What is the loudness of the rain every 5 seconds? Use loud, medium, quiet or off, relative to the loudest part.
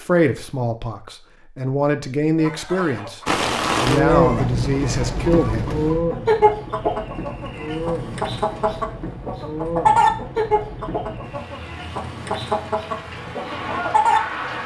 loud, medium, quiet.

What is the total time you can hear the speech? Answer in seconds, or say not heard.
6 s.